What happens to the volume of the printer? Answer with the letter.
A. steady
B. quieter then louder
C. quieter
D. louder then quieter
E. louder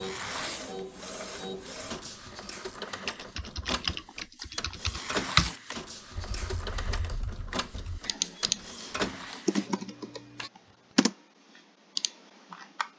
A.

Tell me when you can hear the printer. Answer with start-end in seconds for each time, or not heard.
0.0-10.5.